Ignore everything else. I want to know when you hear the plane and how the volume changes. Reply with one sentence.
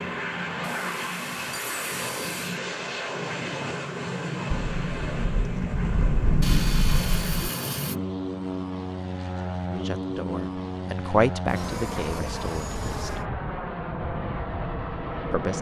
The plane can be heard from 0.0 to 15.5 s, at a steady volume.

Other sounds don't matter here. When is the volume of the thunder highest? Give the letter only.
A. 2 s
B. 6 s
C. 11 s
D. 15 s
B.